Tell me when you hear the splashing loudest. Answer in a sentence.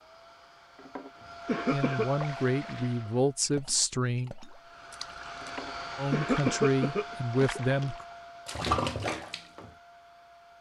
The loudest moment of the splashing is at 9 seconds.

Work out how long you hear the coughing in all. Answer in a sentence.
The coughing can be heard for 3 seconds in total.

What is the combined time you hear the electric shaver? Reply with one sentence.
You can't hear the electric shaver here.